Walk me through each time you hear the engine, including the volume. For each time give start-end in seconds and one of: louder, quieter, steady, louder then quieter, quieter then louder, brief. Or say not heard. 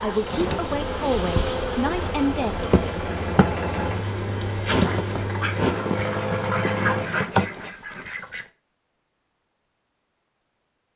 0.0-7.1 louder.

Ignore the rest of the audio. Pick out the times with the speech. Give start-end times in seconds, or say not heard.
0.0-2.5.